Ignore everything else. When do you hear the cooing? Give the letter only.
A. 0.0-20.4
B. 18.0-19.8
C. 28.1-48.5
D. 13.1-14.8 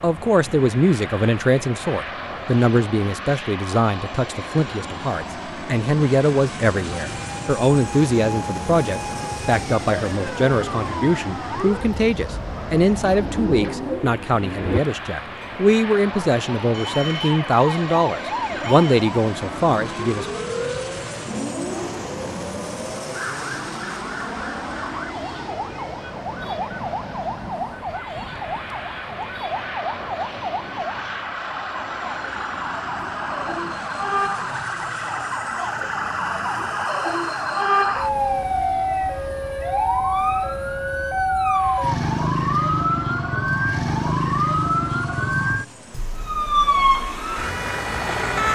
D.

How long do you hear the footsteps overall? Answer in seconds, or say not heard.
not heard.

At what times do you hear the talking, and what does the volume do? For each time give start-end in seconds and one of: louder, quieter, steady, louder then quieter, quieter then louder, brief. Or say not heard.
0.0-20.4 steady.